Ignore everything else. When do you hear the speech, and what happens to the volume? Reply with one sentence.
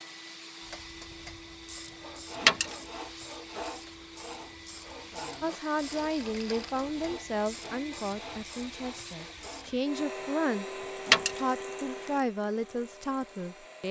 You can hear the speech from 5.4 to 10.7 s, getting quieter then louder; and briefly from 11.3 to 13.8 s.